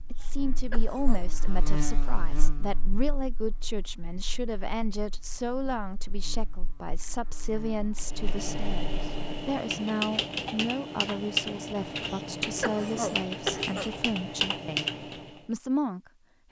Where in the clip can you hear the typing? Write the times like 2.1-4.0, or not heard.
8.0-15.4.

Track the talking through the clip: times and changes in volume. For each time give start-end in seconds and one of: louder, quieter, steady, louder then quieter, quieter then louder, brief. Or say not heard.
0.1-16.4 steady.